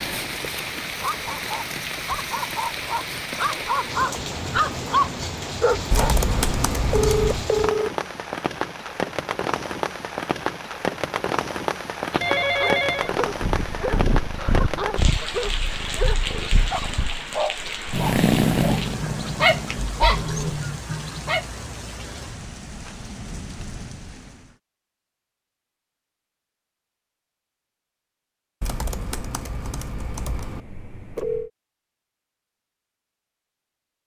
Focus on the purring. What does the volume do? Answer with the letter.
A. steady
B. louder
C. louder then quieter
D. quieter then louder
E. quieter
D.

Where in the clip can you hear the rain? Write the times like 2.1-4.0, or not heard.
0.0-24.6.